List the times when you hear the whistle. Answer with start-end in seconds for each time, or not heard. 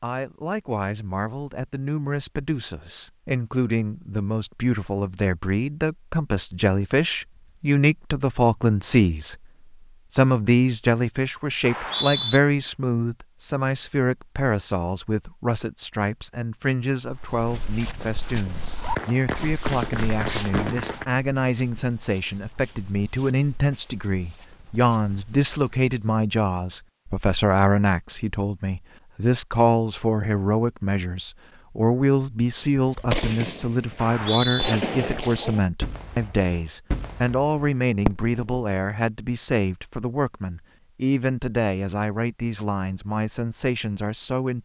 11.6-12.4, 34.0-34.8.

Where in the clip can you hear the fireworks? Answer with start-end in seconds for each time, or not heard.
18.9-21.1, 32.9-38.5.